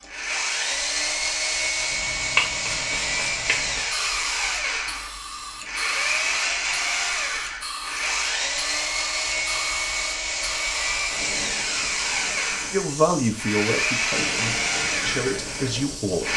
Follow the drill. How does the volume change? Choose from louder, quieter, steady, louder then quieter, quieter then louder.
steady.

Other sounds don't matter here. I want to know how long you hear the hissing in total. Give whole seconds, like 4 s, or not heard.
16 s.